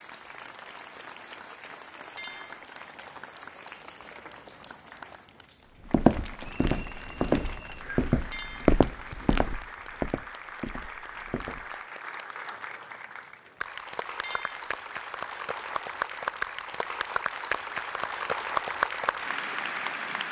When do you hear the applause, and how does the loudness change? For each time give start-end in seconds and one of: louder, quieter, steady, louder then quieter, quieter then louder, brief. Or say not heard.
0.0-20.2 louder.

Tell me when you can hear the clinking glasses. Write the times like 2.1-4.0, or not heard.
2.1-2.6, 8.3-8.8, 14.2-14.7.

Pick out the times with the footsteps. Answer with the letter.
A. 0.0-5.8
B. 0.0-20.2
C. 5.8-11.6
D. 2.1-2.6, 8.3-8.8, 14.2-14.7
C.